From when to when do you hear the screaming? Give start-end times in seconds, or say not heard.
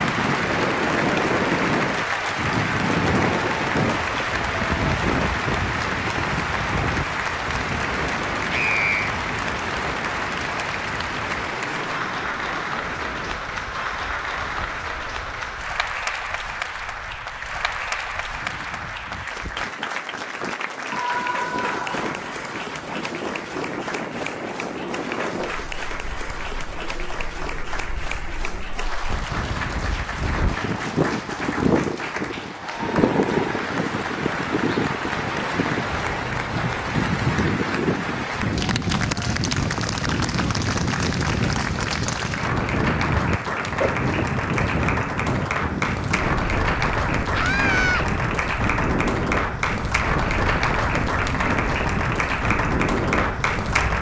8.5-9.2, 20.9-22.1, 47.3-48.0.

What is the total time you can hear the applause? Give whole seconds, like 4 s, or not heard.
54 s.